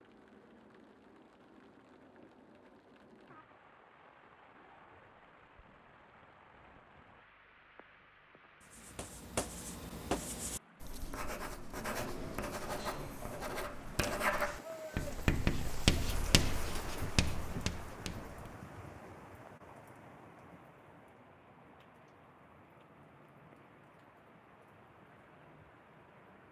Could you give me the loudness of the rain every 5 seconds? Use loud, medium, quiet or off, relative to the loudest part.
quiet, quiet, medium, loud, quiet, quiet.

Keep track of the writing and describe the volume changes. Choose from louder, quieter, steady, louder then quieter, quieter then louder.
louder then quieter.